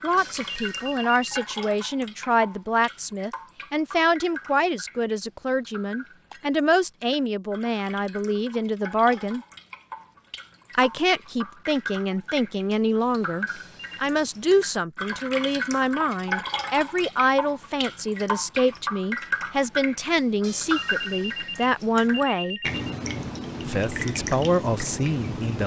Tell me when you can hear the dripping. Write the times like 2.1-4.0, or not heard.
0.0-25.6.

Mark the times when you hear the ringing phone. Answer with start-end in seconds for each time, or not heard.
0.1-1.6, 13.4-14.2, 20.4-22.9.